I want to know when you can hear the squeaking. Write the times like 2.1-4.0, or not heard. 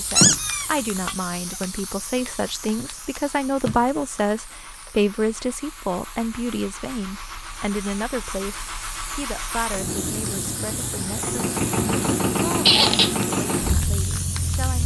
0.1-1.1, 12.7-13.2.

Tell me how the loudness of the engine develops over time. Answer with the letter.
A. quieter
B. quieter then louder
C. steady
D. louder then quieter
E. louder
E.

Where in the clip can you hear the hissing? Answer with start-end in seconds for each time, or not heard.
0.0-14.8.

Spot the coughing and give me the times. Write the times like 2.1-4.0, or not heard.
not heard.